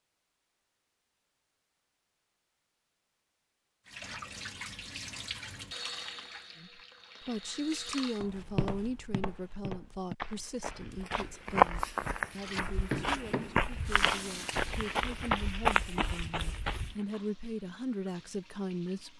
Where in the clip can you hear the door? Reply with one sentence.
The door can't be heard in this clip.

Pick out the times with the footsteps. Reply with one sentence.
You can hear the footsteps from 8.2 to 16.9 s.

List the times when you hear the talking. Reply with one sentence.
The talking can be heard from 6.6 to 19.1 s.